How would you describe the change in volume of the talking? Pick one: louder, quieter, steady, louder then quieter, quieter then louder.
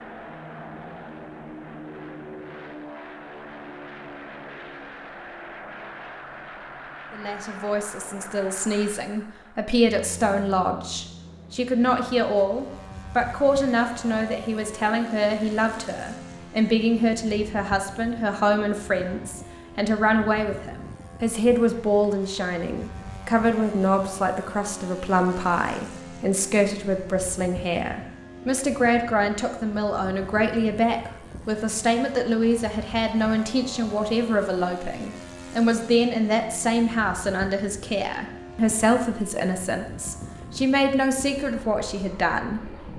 steady.